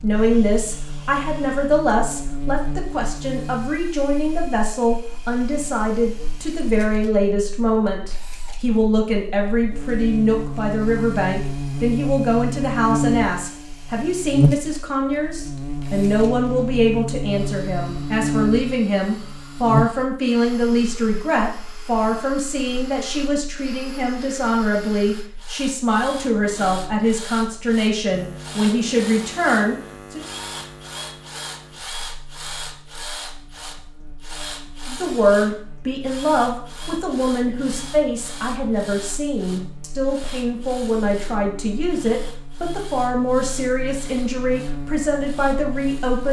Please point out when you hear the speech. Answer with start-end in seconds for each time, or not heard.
0.0-30.2, 34.9-46.2.